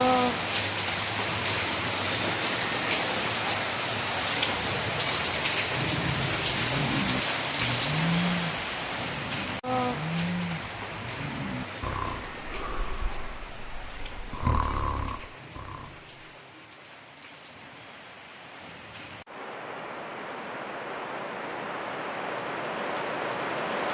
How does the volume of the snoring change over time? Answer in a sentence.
The volume of the snoring goes down, then up.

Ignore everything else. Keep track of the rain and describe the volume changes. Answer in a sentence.
The loudness of the rain goes down, then up.